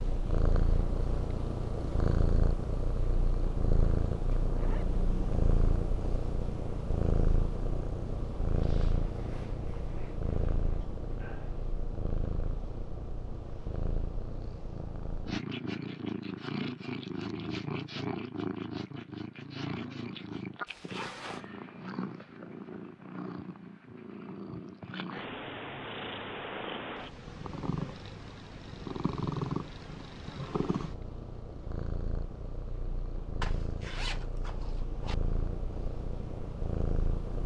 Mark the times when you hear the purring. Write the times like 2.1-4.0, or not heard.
0.0-37.4.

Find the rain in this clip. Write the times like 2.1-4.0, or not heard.
not heard.